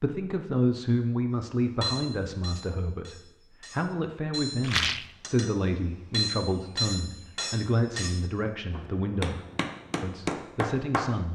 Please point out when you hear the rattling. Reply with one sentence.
You can hear the rattling from 4.6 to 5.1 s.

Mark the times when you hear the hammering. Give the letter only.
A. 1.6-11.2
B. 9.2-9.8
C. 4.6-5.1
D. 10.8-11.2
A.